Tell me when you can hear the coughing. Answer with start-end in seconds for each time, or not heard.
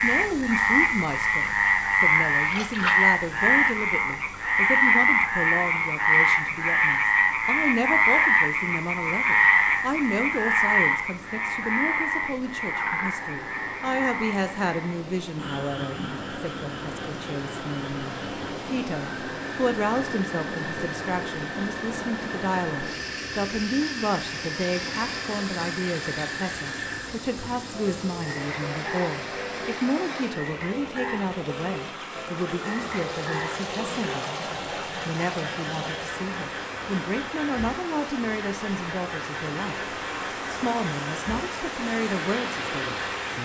not heard.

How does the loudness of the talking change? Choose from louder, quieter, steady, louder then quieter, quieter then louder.
steady.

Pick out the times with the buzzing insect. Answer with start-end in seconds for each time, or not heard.
not heard.